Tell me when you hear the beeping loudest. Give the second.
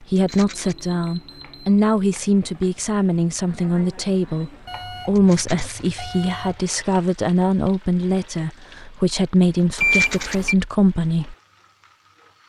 10 s.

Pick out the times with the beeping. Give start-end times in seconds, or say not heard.
0.3-1.8, 4.7-6.7, 9.8-10.6.